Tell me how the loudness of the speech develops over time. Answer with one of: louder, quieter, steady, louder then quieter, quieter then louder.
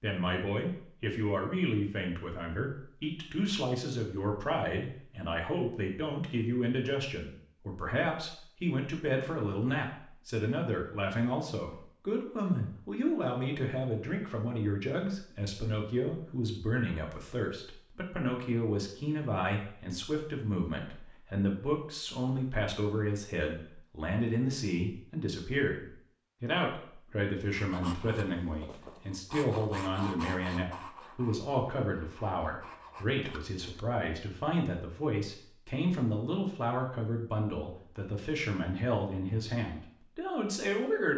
steady.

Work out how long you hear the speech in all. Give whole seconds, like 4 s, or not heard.
41 s.